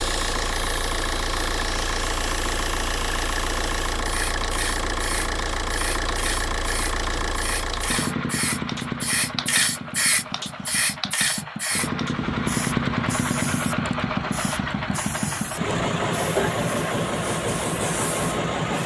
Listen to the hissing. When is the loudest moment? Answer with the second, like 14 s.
10 s.